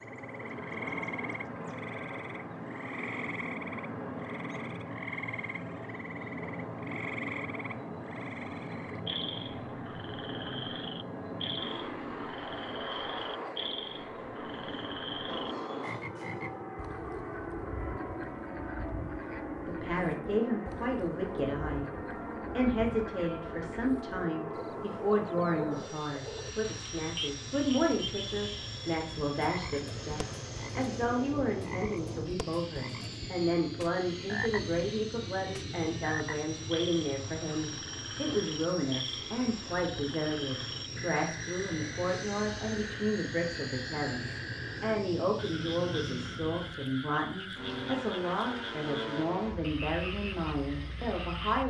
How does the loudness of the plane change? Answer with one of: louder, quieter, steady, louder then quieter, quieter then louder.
steady.